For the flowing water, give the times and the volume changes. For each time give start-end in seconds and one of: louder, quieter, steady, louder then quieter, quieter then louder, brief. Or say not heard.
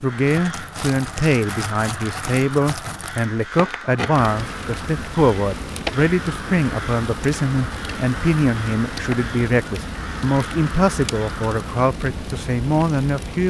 not heard.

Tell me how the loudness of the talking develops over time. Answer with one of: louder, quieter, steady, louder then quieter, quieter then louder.
steady.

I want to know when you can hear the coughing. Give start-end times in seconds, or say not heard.
not heard.